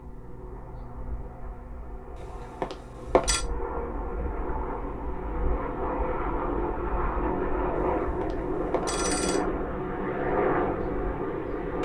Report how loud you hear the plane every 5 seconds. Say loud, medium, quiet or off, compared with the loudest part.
medium, loud, loud.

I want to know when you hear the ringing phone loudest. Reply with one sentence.
The volume of the ringing phone peaks at 3 seconds.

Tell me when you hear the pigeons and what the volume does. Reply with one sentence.
You can't hear the pigeons here.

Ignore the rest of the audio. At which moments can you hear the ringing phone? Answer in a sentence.
You can hear the ringing phone from 2.1 to 3.5 s and from 7.8 to 9.4 s.